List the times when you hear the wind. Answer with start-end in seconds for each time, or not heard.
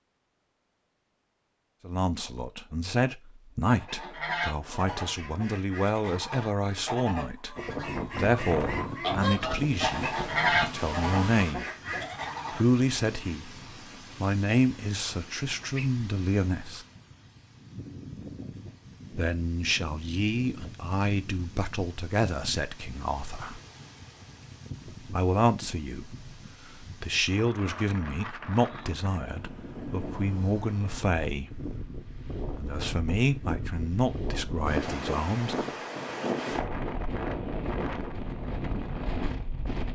7.5-39.9.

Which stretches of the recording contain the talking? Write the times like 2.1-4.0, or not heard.
1.9-7.5, 8.2-11.7, 12.6-13.5, 14.2-16.9, 19.1-23.6, 25.1-35.6.